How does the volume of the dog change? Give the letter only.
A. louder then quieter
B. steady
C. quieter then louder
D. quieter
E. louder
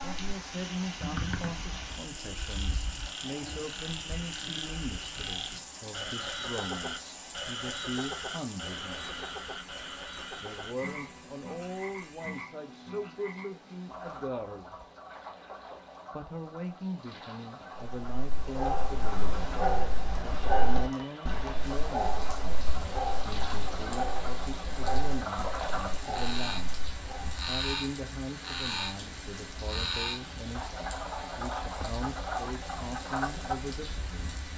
D.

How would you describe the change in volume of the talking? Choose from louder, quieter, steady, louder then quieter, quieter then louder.
steady.